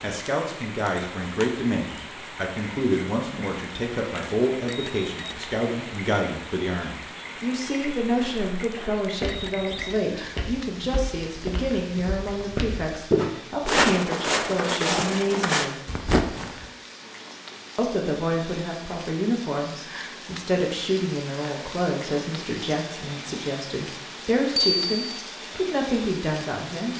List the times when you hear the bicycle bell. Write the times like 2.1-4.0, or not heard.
4.7-5.3, 9.2-9.8, 24.6-25.2.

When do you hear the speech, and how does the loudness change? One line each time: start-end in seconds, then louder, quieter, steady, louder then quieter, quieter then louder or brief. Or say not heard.
0.0-15.8 steady
17.8-26.9 steady.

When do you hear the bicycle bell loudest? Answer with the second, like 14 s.
25 s.